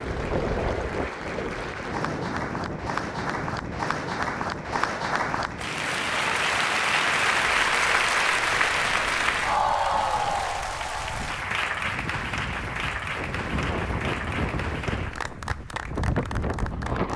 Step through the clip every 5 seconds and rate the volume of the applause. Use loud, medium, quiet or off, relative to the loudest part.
medium, loud, medium, quiet.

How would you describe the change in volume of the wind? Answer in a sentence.
The loudness of the wind goes down, then up.